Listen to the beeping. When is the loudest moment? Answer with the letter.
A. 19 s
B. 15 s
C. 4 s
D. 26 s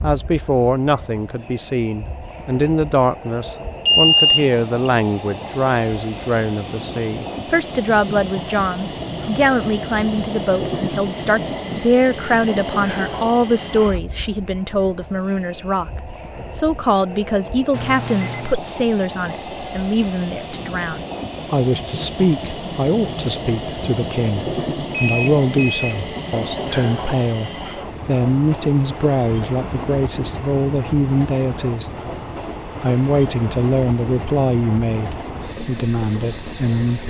C.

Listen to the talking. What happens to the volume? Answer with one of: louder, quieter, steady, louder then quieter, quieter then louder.
steady.